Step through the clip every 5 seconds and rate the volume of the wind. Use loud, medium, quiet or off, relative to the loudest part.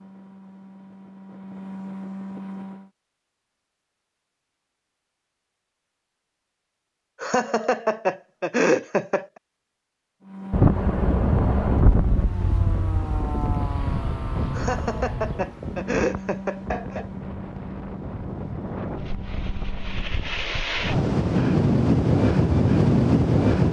off, off, medium, quiet, loud.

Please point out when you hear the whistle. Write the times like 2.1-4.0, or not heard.
not heard.